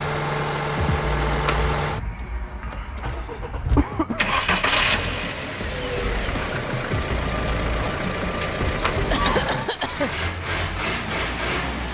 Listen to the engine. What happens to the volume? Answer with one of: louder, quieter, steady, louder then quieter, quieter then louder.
steady.